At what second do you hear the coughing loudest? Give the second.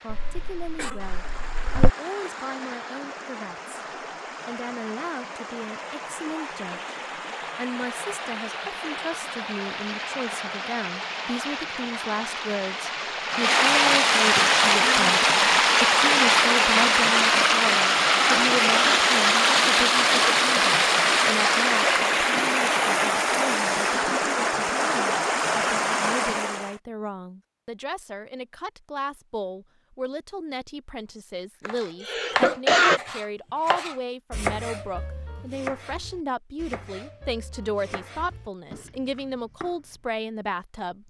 33 s.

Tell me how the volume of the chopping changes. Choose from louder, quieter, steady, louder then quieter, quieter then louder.
quieter.